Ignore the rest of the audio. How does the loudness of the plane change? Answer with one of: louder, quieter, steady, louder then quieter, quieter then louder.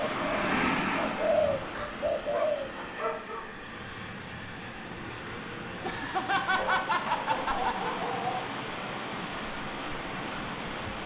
quieter.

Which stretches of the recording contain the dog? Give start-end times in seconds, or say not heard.
1.1-3.5, 6.5-8.4.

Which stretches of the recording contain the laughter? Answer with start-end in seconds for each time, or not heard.
0.0-1.0, 5.8-8.0.